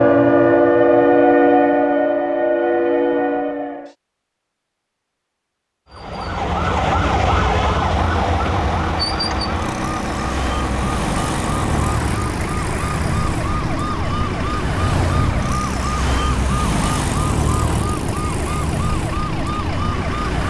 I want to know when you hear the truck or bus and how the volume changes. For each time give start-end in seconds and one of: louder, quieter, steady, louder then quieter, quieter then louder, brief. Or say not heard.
7.9-20.4 quieter.